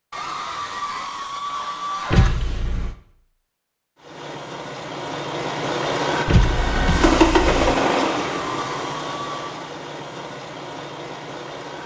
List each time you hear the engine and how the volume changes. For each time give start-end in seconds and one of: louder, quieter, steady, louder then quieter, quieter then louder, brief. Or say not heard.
4.0-11.8 louder then quieter.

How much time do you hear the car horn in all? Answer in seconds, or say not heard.
2 s.